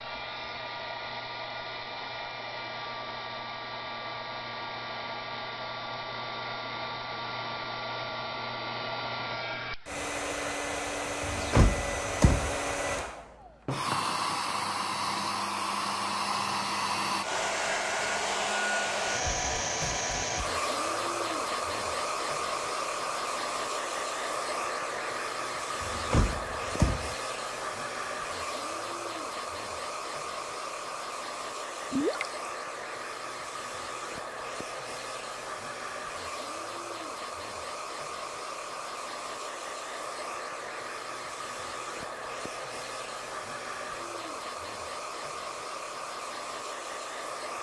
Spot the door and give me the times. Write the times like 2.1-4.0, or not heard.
11.2-12.6, 25.8-27.1.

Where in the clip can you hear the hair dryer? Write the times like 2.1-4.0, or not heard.
0.0-47.5.